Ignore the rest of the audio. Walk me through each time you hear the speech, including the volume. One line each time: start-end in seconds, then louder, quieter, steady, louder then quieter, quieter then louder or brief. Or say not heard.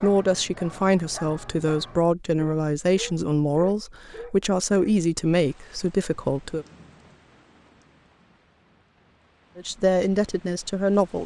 0.0-6.7 steady
9.6-11.2 brief.